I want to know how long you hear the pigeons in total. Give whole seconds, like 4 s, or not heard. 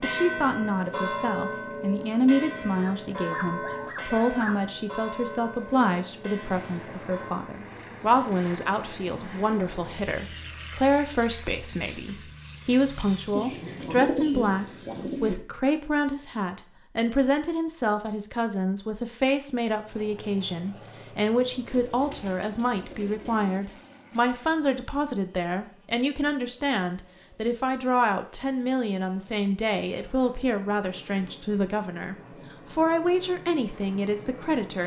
4 s.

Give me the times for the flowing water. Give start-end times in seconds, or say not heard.
not heard.